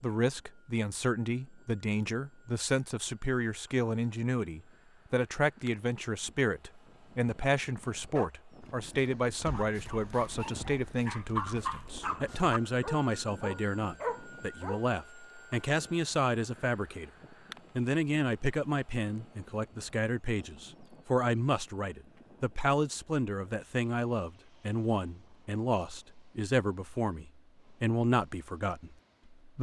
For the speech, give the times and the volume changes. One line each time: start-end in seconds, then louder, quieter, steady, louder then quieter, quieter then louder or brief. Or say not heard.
0.0-17.1 steady
17.8-29.5 steady.